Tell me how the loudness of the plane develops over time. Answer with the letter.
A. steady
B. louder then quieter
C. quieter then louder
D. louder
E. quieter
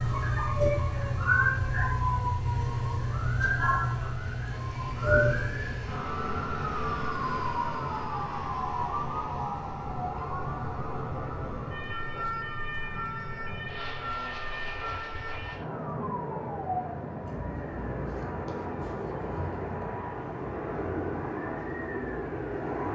D.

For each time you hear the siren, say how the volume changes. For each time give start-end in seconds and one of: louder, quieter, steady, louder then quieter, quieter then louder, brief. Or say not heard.
0.0-22.8 quieter.